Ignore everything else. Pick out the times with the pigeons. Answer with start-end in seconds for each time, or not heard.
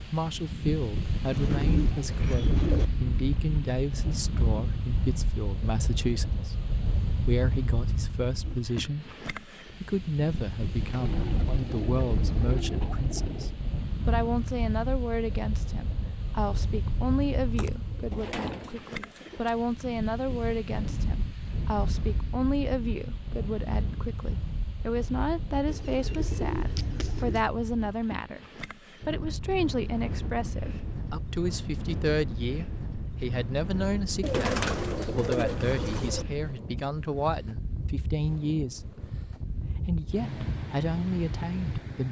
1.2-2.9, 10.8-13.6, 17.6-19.5, 25.6-27.4, 34.2-36.2.